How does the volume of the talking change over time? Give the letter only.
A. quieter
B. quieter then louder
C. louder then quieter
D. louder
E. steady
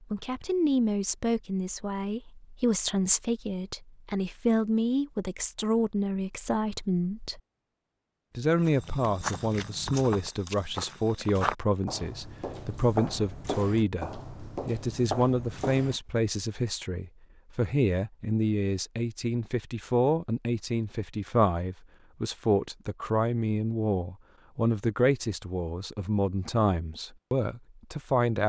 E.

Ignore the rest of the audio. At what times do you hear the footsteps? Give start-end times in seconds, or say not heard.
8.7-16.0.